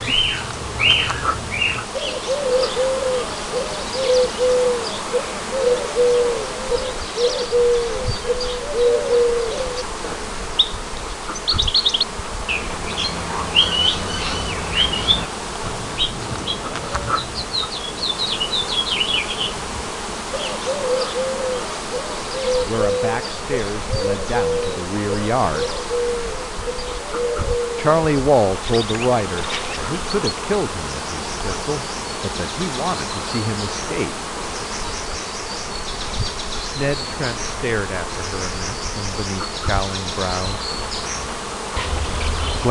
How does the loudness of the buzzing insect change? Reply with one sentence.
The loudness of the buzzing insect stays about the same.